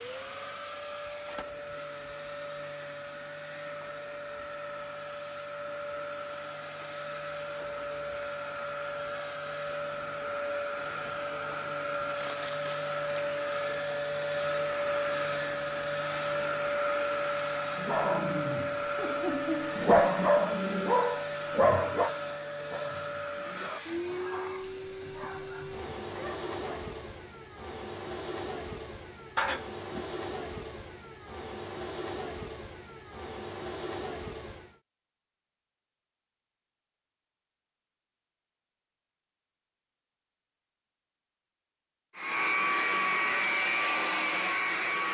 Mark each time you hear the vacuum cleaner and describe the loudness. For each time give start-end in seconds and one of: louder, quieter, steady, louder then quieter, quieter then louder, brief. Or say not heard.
0.0-34.8 louder then quieter
42.1-45.1 brief.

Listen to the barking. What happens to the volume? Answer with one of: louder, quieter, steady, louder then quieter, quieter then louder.
louder then quieter.